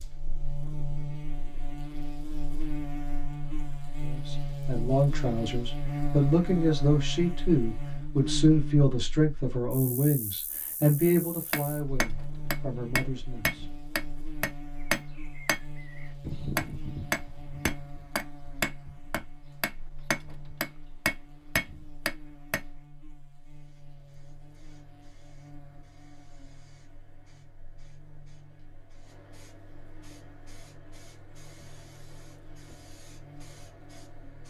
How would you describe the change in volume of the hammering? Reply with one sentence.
The volume of the hammering stays about the same.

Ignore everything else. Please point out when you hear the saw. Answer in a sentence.
The saw can't be heard in this clip.